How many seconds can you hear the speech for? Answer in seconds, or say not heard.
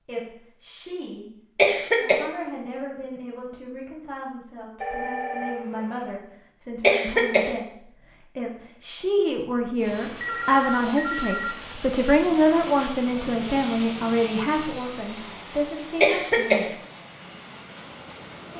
16 s.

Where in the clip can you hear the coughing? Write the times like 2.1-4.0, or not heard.
1.6-2.2, 6.8-7.5, 16.0-16.8.